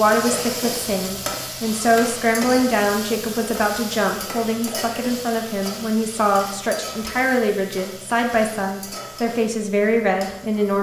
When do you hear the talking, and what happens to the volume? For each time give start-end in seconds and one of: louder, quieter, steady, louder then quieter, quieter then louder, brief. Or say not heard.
0.0-10.7 steady.